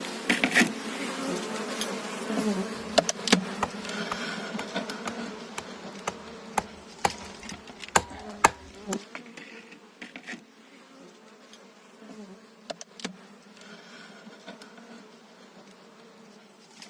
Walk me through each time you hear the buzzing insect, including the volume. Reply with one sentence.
You can hear the buzzing insect from 0.0 to 16.8 s, getting quieter.